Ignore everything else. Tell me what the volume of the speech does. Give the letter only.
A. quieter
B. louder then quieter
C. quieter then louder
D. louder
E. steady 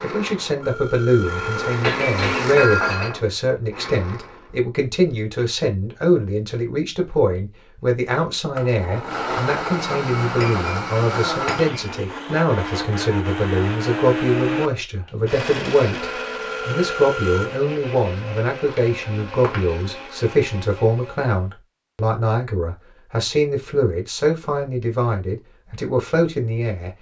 E.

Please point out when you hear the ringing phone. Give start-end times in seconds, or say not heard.
0.6-1.9, 16.0-17.6.